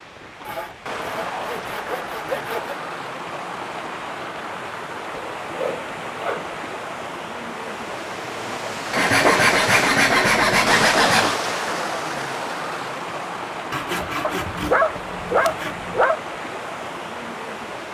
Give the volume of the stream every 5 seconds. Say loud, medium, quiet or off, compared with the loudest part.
medium, loud, loud, medium.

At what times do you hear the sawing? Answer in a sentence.
You can hear the sawing from 0.4 to 2.8 s, from 5.1 to 6.7 s, from 8.9 to 11.3 s and from 13.7 to 15.8 s.